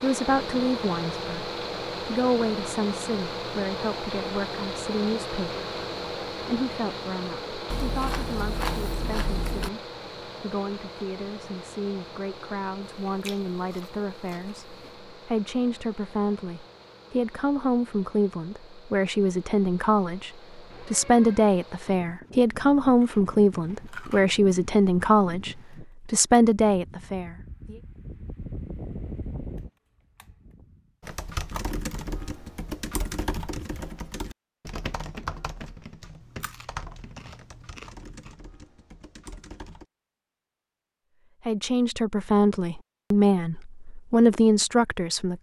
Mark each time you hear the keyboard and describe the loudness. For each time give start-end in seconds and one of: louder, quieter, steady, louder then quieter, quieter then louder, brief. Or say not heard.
31.0-39.9 quieter.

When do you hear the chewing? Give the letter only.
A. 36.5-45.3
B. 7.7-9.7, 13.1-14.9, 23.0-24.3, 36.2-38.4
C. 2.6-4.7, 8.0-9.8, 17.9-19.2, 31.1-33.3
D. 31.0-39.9
B.